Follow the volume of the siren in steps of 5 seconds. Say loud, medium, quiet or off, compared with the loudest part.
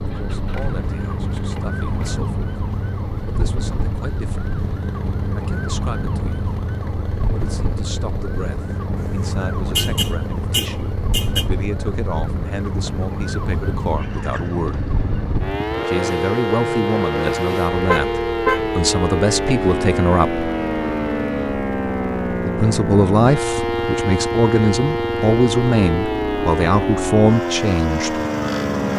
medium, medium, medium, loud, loud, loud.